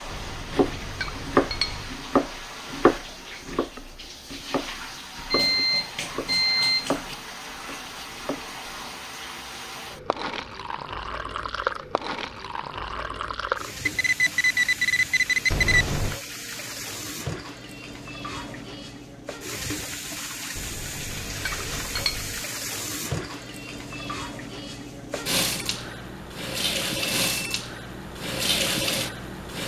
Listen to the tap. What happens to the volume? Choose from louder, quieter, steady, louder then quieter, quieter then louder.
louder.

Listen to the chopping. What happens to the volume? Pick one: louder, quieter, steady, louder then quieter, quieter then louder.
quieter.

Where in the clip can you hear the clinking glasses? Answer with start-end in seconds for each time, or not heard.
0.1-1.9, 15.5-16.2, 20.6-22.4.